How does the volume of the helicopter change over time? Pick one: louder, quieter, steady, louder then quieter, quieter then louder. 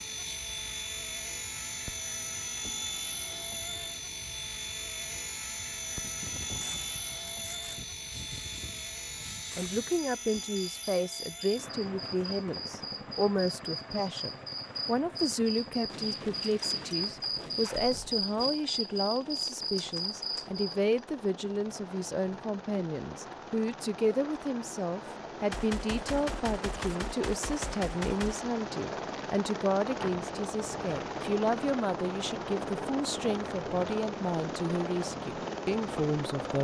quieter then louder.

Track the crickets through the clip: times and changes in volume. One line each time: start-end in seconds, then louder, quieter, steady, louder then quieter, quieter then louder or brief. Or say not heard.
0.0-20.8 louder.